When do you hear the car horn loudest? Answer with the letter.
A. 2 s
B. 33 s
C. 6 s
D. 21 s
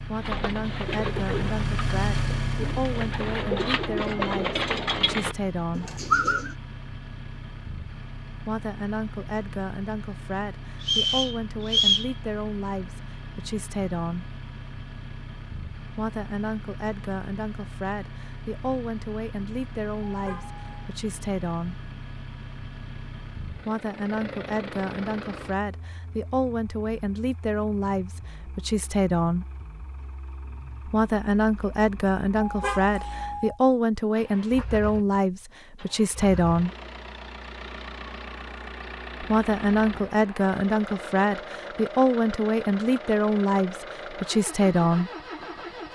B.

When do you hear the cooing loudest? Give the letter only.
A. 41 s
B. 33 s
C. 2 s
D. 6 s
D.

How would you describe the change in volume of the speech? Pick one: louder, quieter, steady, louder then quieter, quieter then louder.
louder.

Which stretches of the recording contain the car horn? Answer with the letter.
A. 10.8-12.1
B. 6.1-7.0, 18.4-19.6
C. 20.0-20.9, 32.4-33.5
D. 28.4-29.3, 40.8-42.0
C.